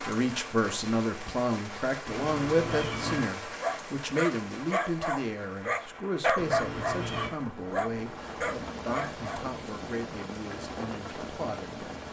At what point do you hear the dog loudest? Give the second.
6 s.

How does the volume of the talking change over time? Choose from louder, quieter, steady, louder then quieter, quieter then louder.
quieter.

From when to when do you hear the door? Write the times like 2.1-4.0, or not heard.
not heard.